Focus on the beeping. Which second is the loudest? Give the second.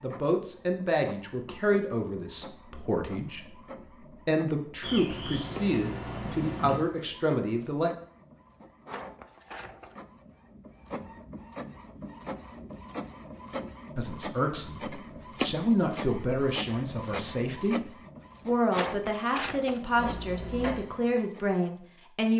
20 s.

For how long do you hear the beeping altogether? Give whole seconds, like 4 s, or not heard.
3 s.